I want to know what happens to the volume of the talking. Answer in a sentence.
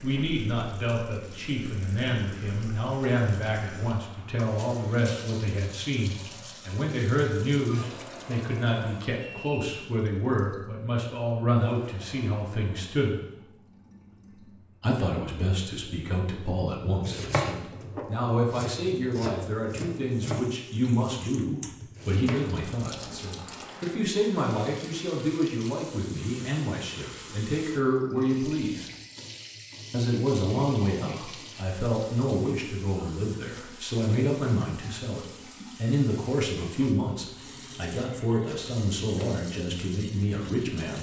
The loudness of the talking stays about the same.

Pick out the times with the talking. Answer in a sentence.
The talking can be heard from 0.0 to 13.2 s, from 14.8 to 28.9 s and from 29.9 to 40.9 s.